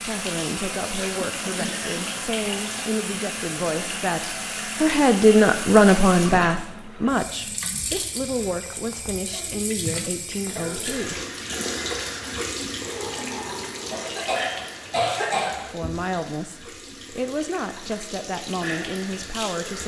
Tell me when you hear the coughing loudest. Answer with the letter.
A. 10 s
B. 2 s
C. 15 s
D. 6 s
C.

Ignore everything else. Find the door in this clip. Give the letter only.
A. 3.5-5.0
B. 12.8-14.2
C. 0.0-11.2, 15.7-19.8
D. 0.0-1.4
B.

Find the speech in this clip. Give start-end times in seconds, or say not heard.
0.0-11.2, 15.7-19.8.